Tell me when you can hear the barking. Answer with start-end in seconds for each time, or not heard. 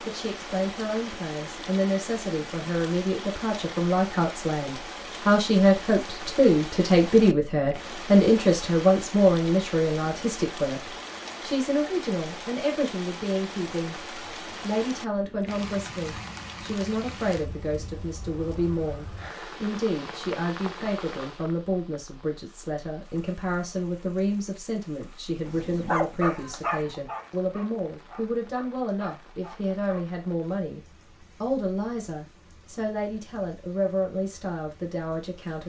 25.4-30.1.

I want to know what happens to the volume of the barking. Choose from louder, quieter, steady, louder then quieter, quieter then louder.
quieter.